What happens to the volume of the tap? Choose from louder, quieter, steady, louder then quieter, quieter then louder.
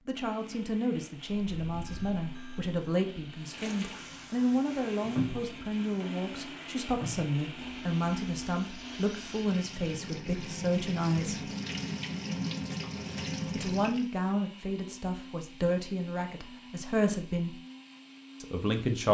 quieter then louder.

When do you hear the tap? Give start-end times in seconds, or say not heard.
3.4-14.1.